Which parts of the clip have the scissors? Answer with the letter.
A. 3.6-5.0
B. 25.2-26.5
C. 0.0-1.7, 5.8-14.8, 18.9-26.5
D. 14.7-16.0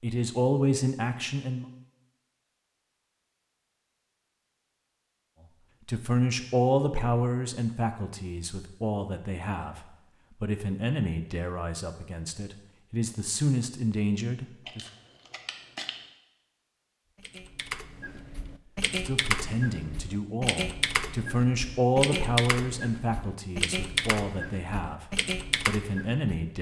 D.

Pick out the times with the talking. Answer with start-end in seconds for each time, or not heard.
0.0-1.7, 5.8-14.8, 18.9-26.5.